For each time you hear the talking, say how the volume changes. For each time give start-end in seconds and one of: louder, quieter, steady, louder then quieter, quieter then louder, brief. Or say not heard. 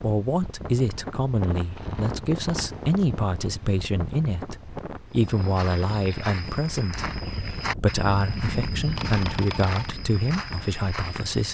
0.0-11.4 steady.